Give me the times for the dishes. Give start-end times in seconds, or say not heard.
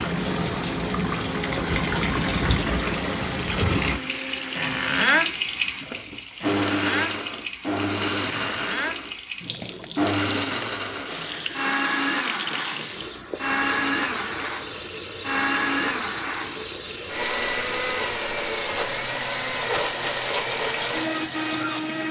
not heard.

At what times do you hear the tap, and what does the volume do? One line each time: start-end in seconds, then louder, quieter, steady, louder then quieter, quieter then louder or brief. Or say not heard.
0.0-22.0 quieter.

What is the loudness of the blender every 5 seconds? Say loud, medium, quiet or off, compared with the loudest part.
medium, loud, loud, loud, loud.